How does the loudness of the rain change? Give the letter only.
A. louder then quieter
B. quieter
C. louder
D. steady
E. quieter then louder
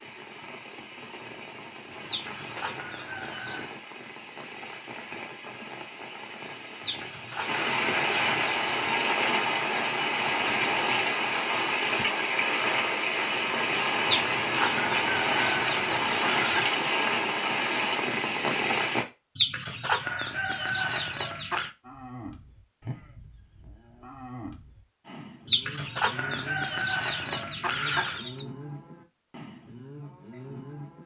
C.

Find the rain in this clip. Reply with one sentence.
You can hear the rain from 0.0 to 19.1 s.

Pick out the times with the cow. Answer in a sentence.
You can hear the cow from 21.8 to 31.0 s.